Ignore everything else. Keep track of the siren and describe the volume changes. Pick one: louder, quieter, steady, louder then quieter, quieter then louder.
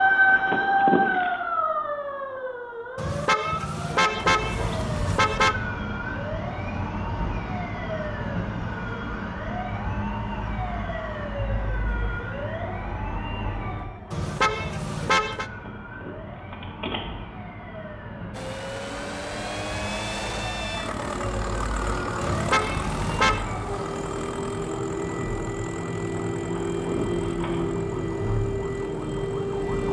quieter then louder.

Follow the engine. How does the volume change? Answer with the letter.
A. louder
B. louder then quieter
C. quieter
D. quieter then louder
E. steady
C.